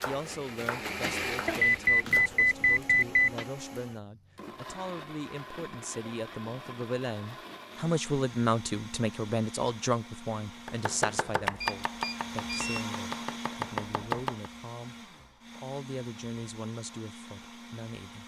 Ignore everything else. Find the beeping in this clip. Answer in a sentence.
The beeping can be heard from 1.4 to 3.5 s and from 11.6 to 12.8 s.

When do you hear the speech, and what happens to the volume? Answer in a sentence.
The speech can be heard from 0.0 to 18.2 s, getting louder then quieter.